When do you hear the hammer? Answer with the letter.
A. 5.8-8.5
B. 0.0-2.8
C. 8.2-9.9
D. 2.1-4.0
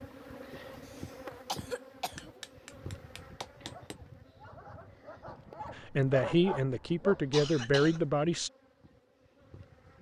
D.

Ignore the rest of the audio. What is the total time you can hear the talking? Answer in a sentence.
The talking can be heard for 3 seconds in total.